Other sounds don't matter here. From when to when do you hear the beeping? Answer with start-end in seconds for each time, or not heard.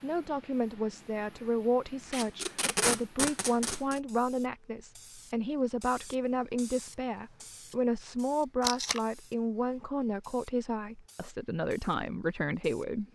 not heard.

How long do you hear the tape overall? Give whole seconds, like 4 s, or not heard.
2 s.